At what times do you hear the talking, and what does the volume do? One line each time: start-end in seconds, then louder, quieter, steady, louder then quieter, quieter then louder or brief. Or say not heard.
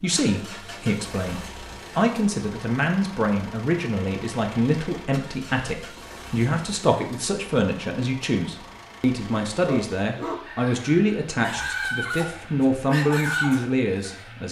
0.0-14.4 steady.